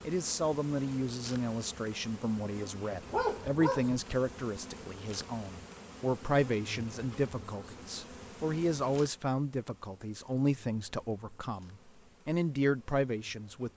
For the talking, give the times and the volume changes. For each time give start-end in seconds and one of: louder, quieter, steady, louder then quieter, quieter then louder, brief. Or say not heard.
0.0-13.7 steady.